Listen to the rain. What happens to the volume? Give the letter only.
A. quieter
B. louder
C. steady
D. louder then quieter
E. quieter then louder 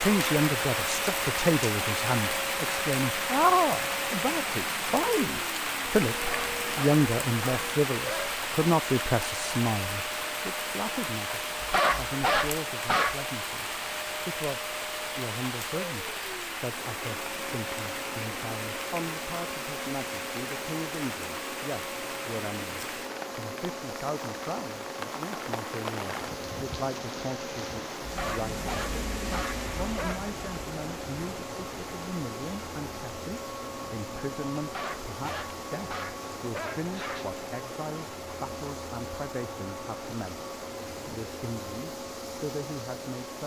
A.